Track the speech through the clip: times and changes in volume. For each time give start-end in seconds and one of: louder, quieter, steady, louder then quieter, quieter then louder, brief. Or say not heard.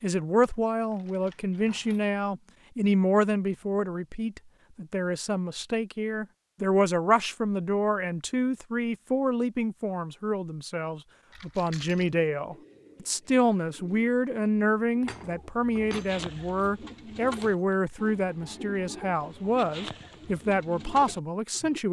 0.0-21.8 steady.